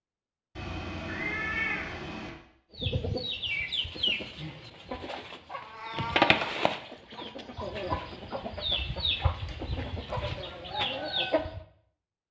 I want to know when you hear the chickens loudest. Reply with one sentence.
The loudest moment of the chickens is at 6 seconds.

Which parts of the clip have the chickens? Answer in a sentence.
You can hear the chickens from 2.7 to 11.6 s.